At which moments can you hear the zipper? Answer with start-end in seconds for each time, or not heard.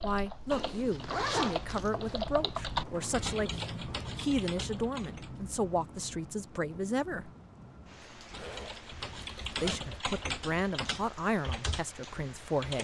0.5-2.2, 8.0-9.8.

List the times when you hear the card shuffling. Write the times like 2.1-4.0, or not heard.
not heard.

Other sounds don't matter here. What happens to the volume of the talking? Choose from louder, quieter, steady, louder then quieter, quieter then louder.
steady.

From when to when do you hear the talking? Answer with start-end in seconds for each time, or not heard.
0.0-7.3, 9.6-12.7.